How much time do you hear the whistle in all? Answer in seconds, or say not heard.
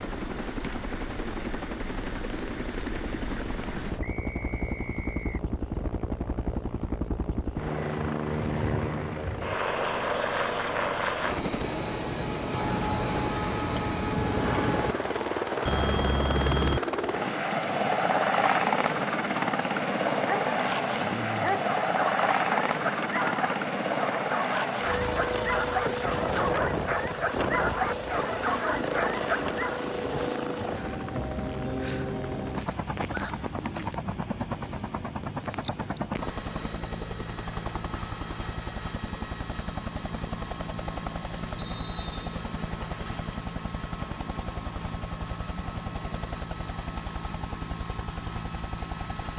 2 s.